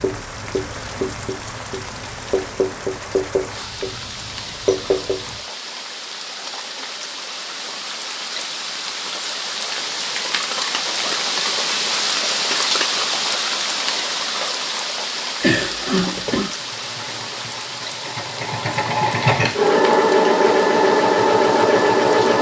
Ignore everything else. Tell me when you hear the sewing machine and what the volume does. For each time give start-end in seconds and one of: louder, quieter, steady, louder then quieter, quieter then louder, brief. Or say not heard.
16.5-22.3 louder.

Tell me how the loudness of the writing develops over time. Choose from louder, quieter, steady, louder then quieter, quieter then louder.
quieter then louder.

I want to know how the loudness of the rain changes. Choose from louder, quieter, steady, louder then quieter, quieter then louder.
louder then quieter.